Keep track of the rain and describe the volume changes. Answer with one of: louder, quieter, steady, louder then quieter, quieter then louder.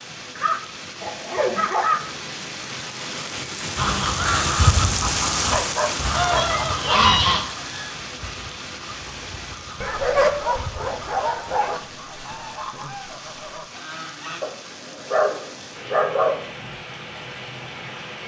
louder then quieter.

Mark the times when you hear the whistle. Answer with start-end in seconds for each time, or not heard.
not heard.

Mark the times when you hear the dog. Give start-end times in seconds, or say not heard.
0.3-2.1, 5.5-7.0, 9.8-11.8, 14.4-16.4.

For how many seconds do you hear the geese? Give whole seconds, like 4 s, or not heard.
11 s.